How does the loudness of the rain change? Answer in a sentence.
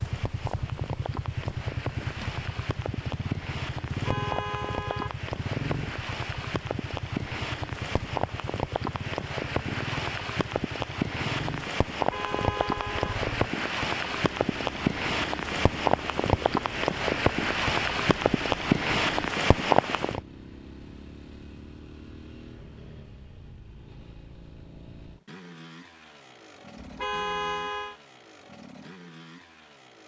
The loudness of the rain goes up.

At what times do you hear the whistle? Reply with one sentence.
The whistle can't be heard in this clip.